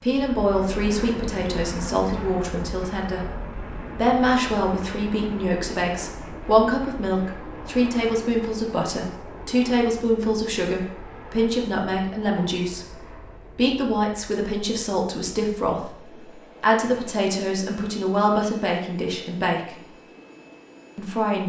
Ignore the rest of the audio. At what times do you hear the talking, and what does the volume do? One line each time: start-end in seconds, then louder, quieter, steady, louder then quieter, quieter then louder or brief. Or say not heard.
0.0-19.9 steady
20.9-21.4 brief.